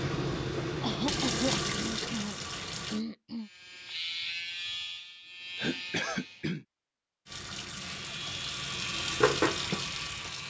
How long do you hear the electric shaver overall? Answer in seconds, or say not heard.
6 s.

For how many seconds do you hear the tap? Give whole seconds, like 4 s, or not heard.
6 s.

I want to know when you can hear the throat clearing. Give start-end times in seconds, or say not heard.
0.8-3.5, 5.5-6.7.